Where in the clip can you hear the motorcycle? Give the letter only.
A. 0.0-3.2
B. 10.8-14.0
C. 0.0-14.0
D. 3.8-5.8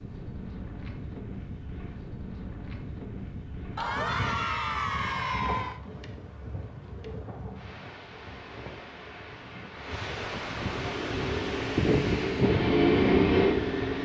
B.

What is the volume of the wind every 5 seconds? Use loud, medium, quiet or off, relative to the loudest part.
medium, medium, loud.